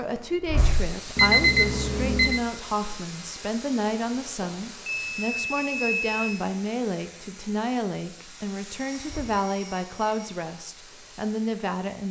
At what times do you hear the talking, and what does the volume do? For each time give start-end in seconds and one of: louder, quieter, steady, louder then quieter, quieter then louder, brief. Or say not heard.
0.0-12.0 steady.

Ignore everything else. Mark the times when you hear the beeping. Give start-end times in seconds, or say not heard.
1.1-2.4, 4.4-6.4, 8.9-10.3.